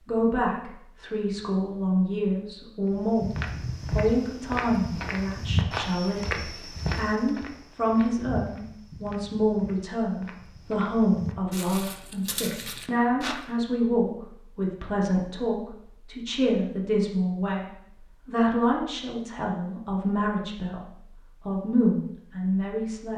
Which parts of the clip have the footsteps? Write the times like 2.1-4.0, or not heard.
2.9-13.4.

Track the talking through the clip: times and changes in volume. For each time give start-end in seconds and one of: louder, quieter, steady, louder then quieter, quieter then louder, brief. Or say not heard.
0.1-23.1 steady.